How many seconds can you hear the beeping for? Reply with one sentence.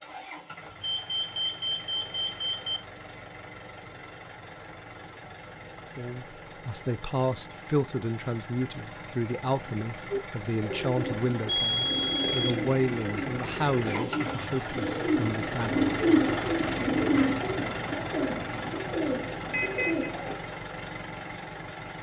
You can hear the beeping for 4 seconds altogether.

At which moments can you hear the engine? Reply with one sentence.
The engine can be heard from 0.0 to 21.9 s.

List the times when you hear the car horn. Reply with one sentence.
You can't hear the car horn here.